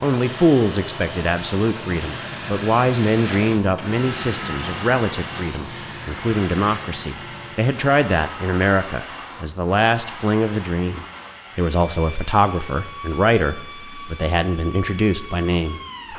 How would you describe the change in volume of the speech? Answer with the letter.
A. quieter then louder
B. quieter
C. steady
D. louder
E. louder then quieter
C.